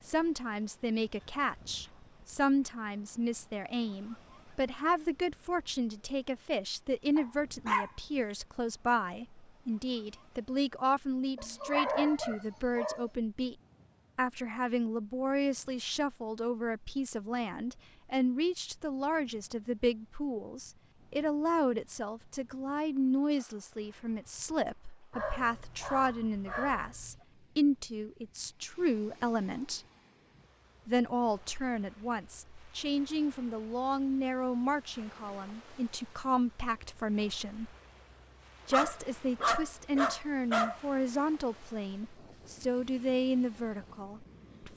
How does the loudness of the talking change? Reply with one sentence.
The volume of the talking stays about the same.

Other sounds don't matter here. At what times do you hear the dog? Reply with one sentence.
You can hear the dog from 7.2 to 7.9 s, from 11.3 to 13.1 s, from 25.1 to 27.2 s and from 38.7 to 40.8 s.